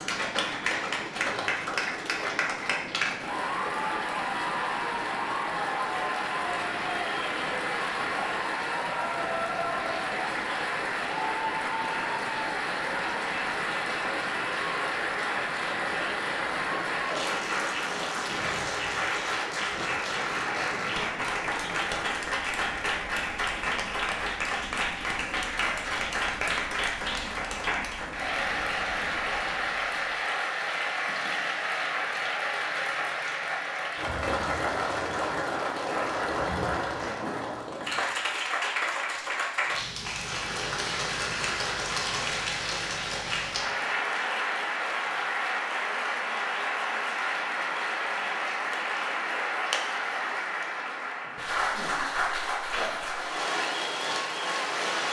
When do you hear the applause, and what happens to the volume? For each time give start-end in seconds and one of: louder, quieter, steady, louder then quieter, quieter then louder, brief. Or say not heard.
0.0-55.0 steady.